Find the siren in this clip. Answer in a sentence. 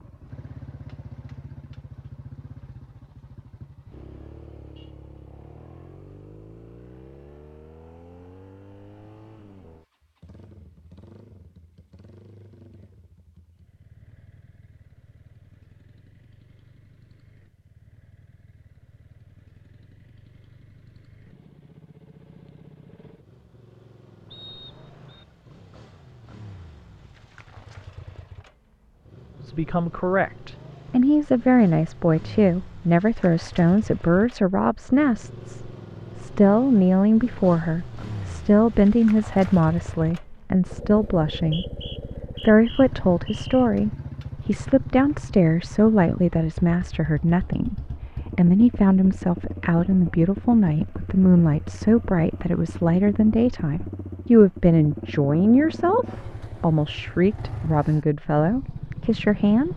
The siren can't be heard in this clip.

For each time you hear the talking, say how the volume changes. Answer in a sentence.
The talking can be heard from 29.4 to 59.7 s, at a steady volume.